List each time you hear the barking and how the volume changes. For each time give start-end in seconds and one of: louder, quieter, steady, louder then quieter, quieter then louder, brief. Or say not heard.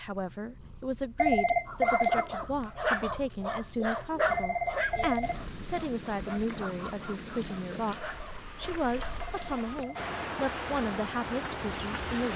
1.6-9.2 quieter.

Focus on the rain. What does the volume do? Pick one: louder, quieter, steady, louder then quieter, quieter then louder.
louder.